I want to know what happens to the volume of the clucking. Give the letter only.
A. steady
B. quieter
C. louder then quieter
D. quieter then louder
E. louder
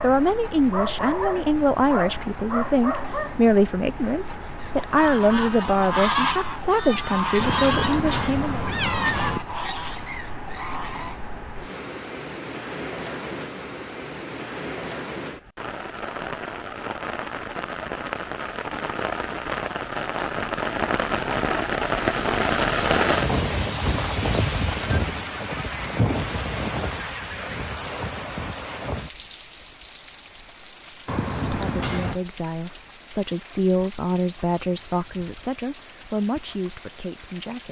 B.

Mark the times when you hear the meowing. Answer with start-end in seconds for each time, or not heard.
7.3-9.4, 31.1-32.2.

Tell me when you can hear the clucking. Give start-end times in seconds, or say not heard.
4.6-11.2.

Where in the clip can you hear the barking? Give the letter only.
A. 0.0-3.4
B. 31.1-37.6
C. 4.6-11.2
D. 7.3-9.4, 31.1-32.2
A.